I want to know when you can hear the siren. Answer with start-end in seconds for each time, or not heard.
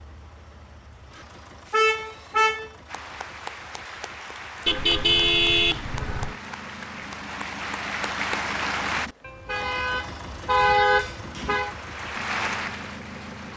not heard.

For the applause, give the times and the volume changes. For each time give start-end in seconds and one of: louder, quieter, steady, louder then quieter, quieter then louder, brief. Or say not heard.
2.9-9.1 louder
11.5-13.5 brief.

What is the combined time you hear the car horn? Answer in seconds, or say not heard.
5 s.